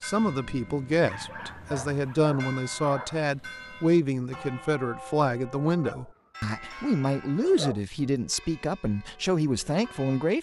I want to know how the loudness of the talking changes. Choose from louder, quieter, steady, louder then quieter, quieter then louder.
steady.